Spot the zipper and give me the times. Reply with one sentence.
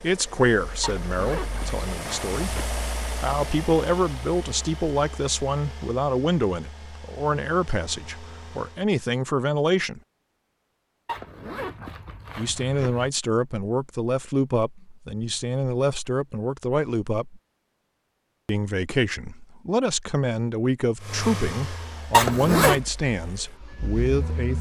You can hear the zipper from 0.8 to 2.8 s, from 11.1 to 13.1 s and from 22.1 to 22.8 s.